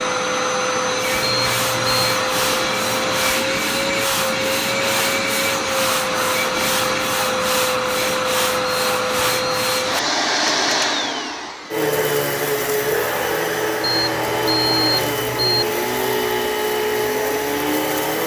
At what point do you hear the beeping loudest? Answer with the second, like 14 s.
15 s.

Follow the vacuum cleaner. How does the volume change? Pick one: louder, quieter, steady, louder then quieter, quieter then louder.
steady.